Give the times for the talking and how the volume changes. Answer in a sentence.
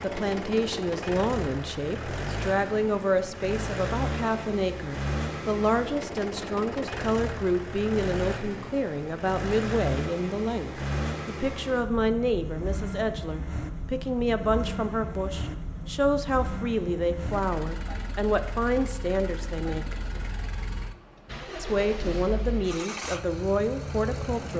The talking can be heard from 0.0 to 19.9 s, at a steady volume; and briefly from 21.6 to 24.5 s.